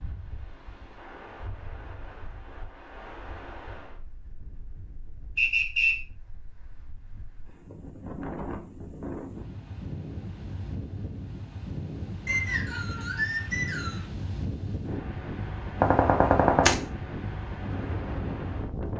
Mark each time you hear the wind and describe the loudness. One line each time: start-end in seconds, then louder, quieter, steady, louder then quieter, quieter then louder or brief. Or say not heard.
0.0-18.9 quieter then louder.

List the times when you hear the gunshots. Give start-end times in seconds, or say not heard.
15.8-16.8.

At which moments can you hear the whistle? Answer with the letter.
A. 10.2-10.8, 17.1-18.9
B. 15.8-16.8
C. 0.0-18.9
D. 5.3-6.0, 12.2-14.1
D.